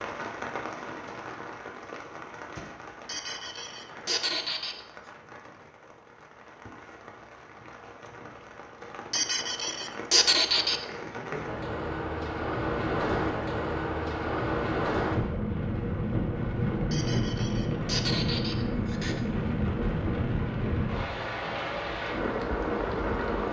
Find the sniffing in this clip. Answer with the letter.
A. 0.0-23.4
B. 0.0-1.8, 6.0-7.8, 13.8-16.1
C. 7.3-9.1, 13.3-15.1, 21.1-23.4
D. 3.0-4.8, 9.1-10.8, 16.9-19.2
D.